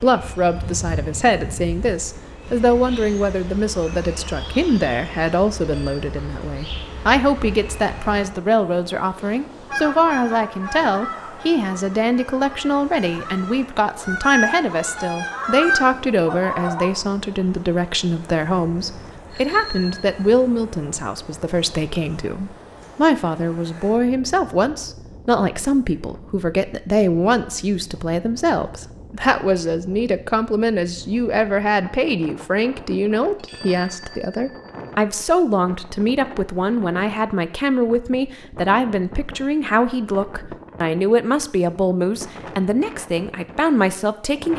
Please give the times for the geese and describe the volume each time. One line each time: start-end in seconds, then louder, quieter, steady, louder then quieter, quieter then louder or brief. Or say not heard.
9.7-16.9 quieter then louder.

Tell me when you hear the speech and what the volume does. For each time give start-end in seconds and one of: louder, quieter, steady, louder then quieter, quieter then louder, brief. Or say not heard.
0.0-44.5 steady.